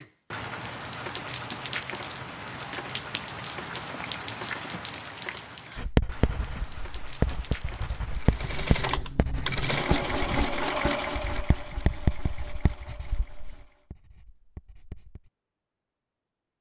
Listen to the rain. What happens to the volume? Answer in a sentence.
The loudness of the rain goes down.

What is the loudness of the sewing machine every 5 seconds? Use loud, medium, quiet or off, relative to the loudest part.
off, loud, loud, off.